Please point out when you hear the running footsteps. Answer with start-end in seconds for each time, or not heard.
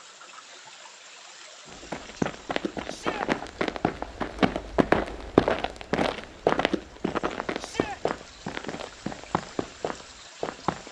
1.6-10.8.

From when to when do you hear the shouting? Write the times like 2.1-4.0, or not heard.
2.9-3.3, 7.5-8.0.